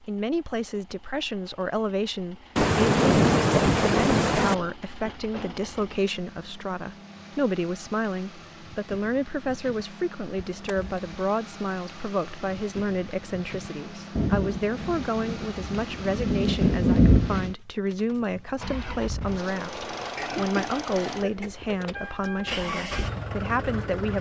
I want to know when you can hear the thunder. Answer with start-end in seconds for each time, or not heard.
2.5-4.5, 14.2-17.6.